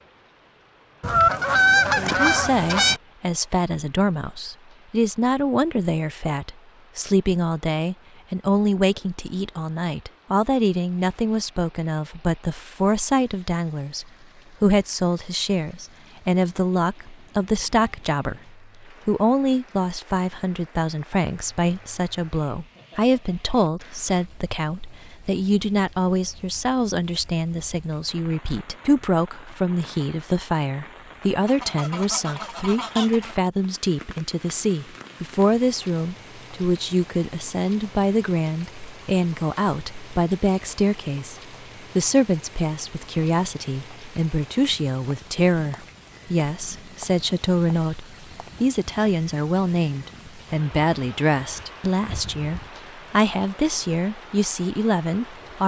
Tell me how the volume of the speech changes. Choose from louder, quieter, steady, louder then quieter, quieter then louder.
steady.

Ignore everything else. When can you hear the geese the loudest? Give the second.
2 s.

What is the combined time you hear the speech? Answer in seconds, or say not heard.
54 s.